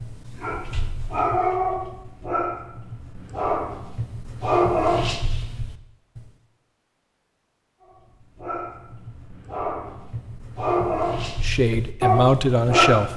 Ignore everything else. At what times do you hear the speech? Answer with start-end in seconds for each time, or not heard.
11.4-13.1.